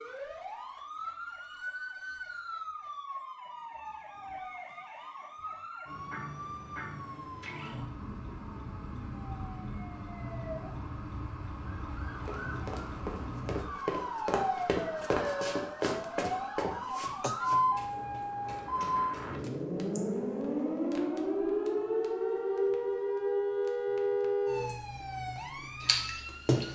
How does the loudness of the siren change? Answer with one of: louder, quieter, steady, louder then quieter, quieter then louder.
louder.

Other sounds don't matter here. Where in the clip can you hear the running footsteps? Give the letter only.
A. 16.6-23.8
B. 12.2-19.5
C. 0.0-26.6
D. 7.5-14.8
B.